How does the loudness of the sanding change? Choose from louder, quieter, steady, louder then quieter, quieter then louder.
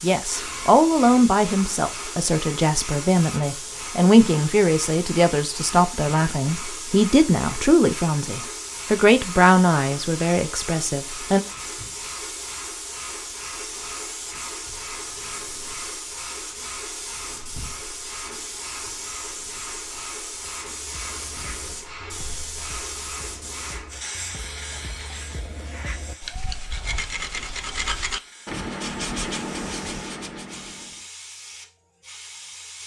louder.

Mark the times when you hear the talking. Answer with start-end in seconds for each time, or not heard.
0.0-11.4.